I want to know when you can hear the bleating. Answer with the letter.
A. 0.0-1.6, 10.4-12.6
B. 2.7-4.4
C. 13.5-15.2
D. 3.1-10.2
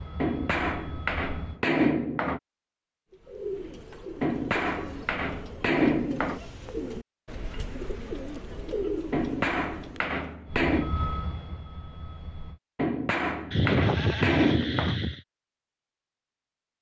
C.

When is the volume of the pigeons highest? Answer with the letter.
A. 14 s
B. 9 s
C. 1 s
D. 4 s
B.